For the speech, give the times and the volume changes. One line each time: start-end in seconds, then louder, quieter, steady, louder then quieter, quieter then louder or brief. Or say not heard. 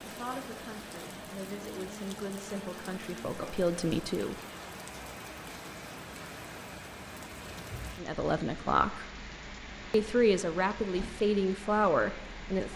0.0-4.3 louder
8.0-9.1 brief
9.9-12.7 brief.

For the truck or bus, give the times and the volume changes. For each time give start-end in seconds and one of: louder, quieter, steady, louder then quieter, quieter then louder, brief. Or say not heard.
not heard.